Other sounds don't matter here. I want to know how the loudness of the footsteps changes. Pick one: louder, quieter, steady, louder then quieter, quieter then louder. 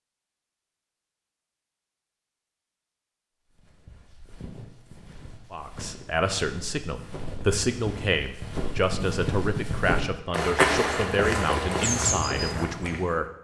louder.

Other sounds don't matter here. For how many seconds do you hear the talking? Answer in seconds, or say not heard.
8 s.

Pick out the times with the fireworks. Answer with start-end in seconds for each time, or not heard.
not heard.